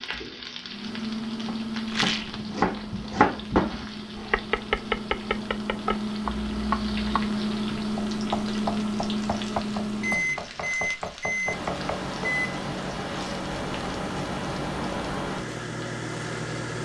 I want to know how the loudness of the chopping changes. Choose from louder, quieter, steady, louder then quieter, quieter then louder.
louder then quieter.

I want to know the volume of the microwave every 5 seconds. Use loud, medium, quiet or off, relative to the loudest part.
medium, loud, loud, loud.